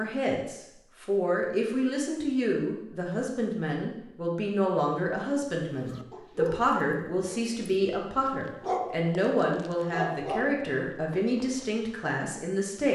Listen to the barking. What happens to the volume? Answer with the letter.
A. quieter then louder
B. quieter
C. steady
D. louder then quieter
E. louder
A.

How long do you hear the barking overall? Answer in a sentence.
You can hear the barking for 6 seconds altogether.